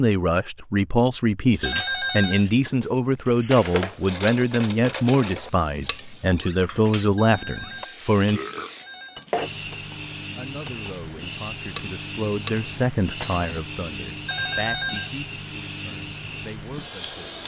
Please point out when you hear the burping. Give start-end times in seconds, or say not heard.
8.2-9.4.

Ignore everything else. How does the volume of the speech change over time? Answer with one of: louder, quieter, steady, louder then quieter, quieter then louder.
quieter.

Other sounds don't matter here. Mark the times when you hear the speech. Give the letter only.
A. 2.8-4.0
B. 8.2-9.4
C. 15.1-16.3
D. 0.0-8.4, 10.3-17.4
D.